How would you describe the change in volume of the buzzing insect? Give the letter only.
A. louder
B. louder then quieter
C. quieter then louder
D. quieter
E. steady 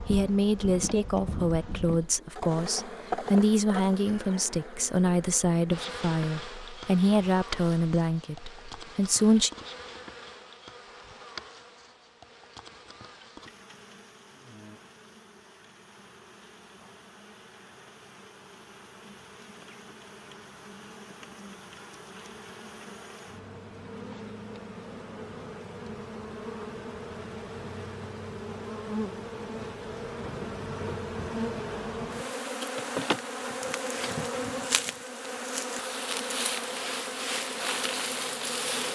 C.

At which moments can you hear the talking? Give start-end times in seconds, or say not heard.
0.1-9.5.